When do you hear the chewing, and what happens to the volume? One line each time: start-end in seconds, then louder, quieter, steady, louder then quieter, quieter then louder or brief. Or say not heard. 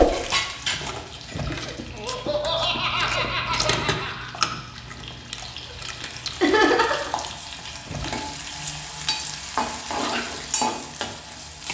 0.1-8.2 louder then quieter.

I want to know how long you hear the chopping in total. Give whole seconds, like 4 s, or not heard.
not heard.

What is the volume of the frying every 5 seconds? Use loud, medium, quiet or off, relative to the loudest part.
loud, medium, loud.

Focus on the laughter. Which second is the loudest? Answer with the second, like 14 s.
7 s.